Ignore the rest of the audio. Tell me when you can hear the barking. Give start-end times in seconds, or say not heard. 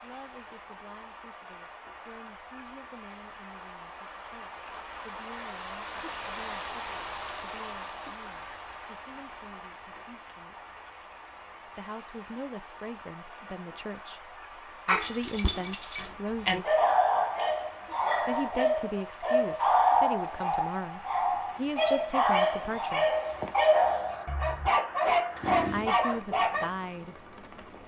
14.8-26.7.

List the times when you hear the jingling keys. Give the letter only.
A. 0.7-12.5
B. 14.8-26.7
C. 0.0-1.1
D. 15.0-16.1
D.